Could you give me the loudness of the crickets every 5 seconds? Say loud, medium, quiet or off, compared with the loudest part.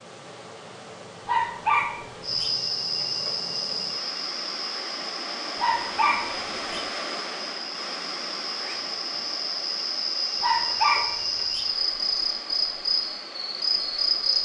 loud, medium, loud.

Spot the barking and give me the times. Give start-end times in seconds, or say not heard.
1.2-2.5, 5.6-6.8, 10.4-11.7.